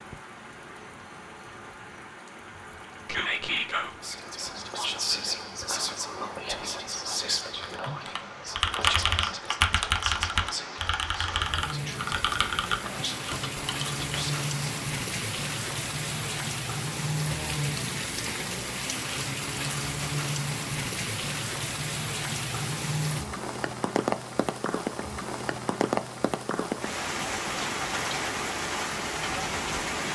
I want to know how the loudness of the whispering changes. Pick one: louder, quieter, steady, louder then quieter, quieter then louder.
quieter.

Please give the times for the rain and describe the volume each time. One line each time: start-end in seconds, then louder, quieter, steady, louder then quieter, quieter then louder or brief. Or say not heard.
0.0-30.0 louder.